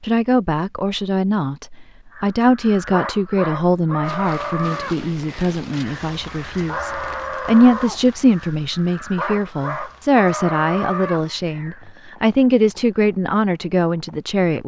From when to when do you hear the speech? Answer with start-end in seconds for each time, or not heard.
0.0-14.6.